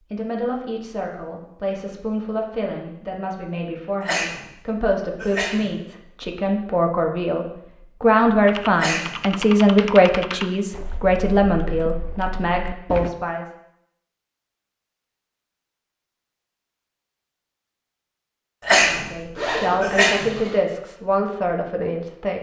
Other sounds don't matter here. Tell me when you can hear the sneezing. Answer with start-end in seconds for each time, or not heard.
4.0-5.7, 8.8-9.2, 18.6-20.4.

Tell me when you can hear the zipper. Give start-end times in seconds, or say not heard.
19.4-20.6.